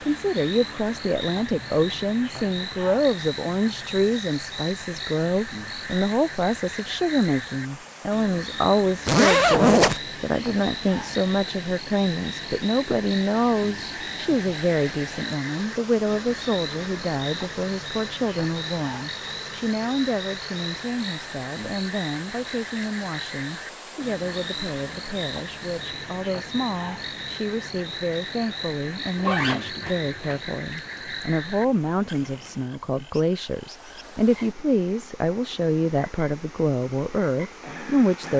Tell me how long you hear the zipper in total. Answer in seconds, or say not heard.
2 s.